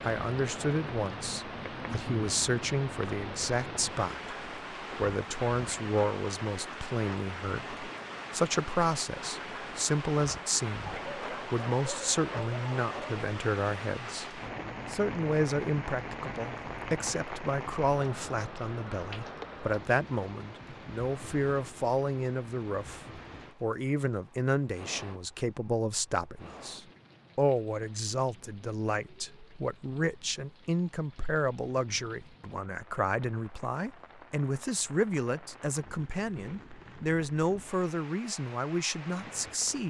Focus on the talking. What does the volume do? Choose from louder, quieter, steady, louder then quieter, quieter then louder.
steady.